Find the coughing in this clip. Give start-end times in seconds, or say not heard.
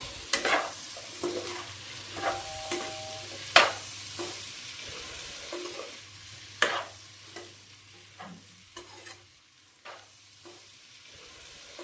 not heard.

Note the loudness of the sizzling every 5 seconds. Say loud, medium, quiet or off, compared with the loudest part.
loud, medium, quiet.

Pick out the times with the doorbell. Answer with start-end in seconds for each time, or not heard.
2.2-3.3.